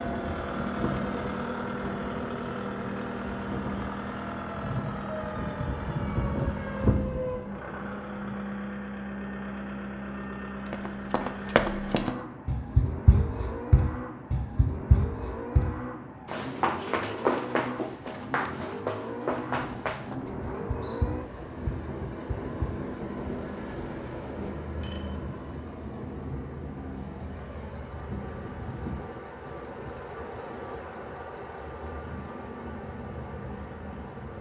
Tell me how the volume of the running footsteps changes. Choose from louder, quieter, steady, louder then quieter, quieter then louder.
quieter.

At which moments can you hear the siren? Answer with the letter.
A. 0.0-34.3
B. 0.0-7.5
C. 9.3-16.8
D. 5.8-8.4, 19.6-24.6
B.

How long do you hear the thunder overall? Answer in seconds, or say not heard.
8 s.